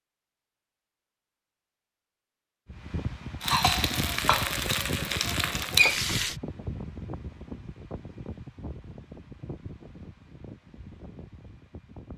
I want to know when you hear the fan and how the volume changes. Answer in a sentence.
You can hear the fan from 2.6 to 12.1 s, getting quieter.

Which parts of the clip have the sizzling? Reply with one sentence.
The sizzling can be heard from 3.4 to 6.3 s.